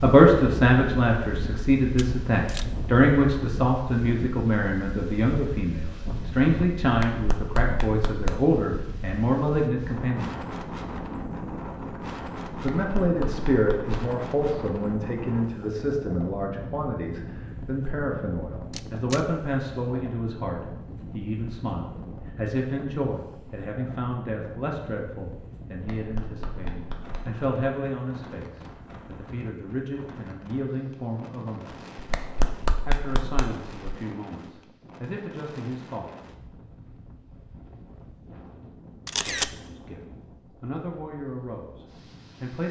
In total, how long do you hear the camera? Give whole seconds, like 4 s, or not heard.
2 s.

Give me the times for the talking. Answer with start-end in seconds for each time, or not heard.
0.0-10.3, 12.6-31.9, 32.9-36.1, 39.2-42.6.